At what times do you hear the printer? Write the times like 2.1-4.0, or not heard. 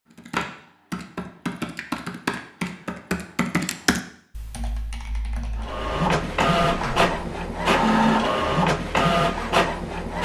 5.5-10.2.